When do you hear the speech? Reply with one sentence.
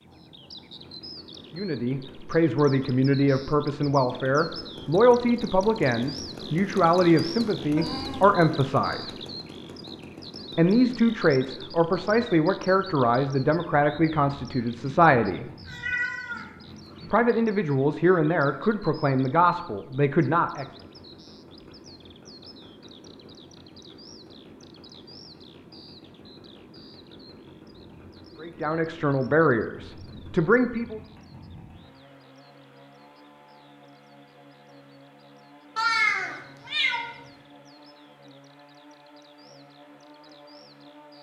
You can hear the speech from 1.6 to 9.2 s, from 10.6 to 15.4 s, from 17.1 to 20.6 s and from 28.4 to 31.0 s.